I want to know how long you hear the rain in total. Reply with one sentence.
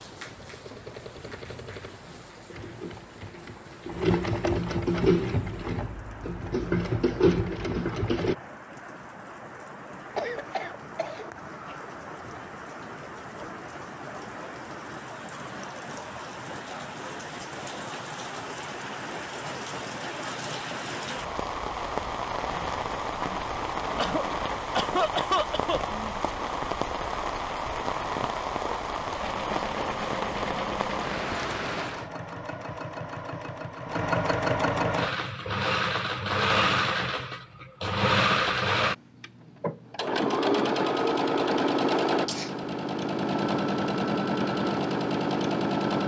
You can hear the rain for 32 seconds altogether.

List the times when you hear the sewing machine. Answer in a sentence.
The sewing machine can be heard from 0.0 to 8.3 s and from 29.1 to 46.0 s.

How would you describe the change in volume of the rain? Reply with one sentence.
The volume of the rain goes up.